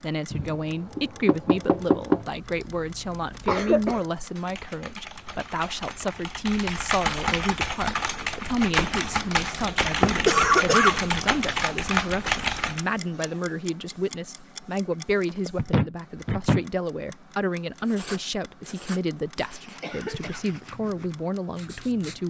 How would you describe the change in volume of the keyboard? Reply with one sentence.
The loudness of the keyboard goes up.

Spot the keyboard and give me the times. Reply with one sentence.
The keyboard can be heard from 2.2 to 12.8 s.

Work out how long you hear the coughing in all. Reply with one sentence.
You can hear the coughing for 3 seconds altogether.